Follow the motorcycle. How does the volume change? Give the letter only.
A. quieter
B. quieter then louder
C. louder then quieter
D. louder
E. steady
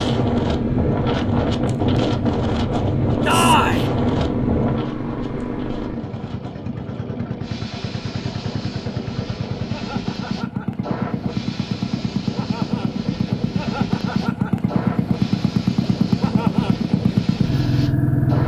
D.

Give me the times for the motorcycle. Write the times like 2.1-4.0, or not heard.
0.0-18.4.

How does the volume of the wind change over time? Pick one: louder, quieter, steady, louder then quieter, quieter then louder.
quieter.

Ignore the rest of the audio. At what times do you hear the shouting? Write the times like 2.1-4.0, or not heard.
3.2-3.9.